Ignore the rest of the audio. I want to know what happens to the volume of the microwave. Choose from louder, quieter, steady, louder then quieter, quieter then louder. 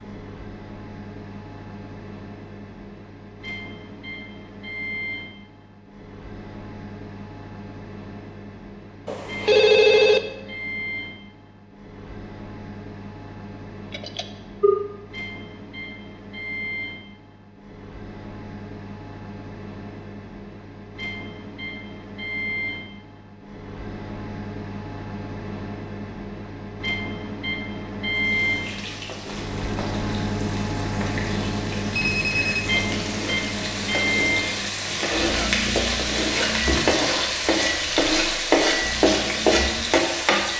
louder.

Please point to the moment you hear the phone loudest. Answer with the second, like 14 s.
10 s.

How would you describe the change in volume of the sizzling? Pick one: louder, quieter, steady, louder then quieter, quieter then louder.
louder.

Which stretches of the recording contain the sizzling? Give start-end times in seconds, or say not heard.
28.1-40.5.